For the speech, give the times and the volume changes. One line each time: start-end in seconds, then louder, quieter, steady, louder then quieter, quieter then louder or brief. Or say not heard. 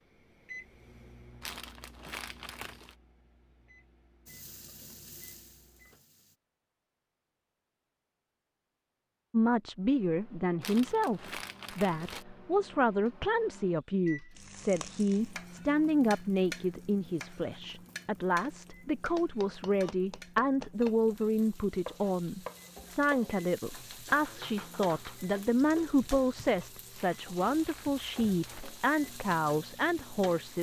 9.3-30.5 steady.